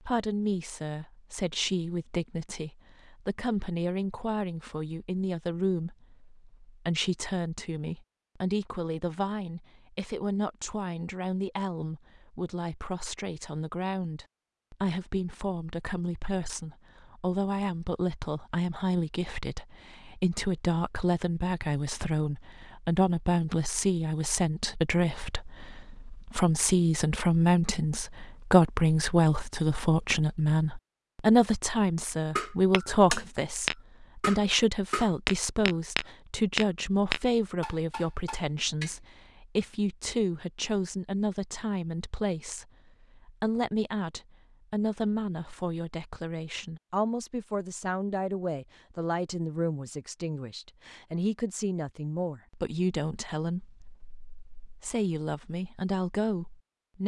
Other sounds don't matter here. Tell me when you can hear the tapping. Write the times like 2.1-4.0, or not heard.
32.4-39.0.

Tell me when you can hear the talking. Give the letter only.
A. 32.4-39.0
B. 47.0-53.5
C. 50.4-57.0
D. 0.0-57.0
D.